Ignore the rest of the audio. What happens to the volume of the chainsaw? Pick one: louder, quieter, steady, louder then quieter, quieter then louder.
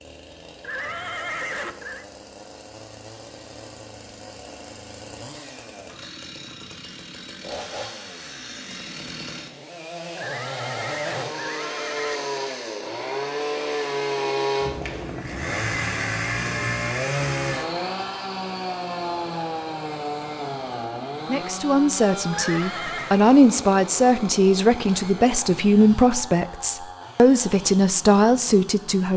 louder then quieter.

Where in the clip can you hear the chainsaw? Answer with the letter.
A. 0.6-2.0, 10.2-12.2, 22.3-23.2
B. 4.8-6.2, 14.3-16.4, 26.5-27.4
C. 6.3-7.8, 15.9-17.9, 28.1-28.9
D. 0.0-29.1
D.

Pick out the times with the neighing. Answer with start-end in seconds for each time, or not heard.
0.6-2.0, 10.2-12.2, 22.3-23.2.